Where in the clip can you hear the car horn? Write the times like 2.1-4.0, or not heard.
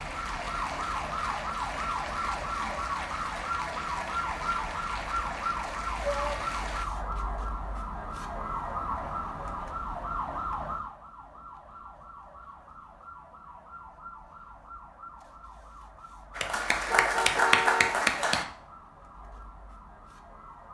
16.5-17.9.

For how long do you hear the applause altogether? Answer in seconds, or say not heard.
9 s.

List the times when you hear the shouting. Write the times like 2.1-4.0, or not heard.
6.0-6.6.